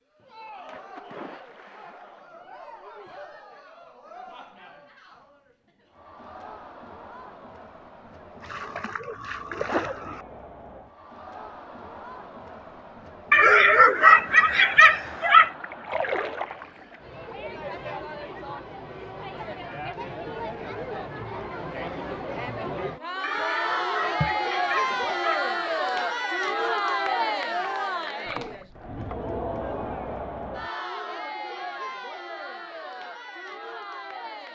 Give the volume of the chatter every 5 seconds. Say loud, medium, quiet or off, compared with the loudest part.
quiet, quiet, quiet, medium, loud, loud, medium.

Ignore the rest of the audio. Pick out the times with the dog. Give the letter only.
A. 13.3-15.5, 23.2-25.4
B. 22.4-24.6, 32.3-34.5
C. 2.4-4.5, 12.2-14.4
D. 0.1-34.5
A.